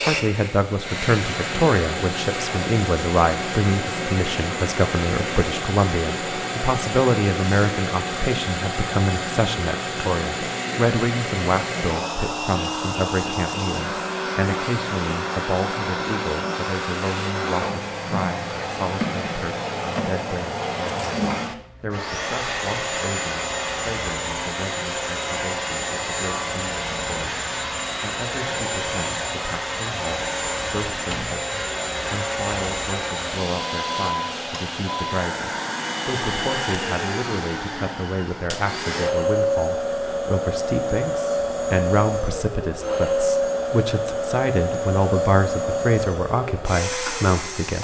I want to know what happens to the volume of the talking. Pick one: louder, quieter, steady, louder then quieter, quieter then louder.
quieter then louder.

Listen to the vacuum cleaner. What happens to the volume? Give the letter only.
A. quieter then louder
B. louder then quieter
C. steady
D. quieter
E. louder
C.